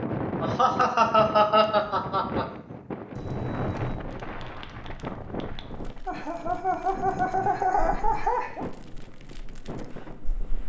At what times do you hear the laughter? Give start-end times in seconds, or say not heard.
0.4-2.5, 6.0-8.7.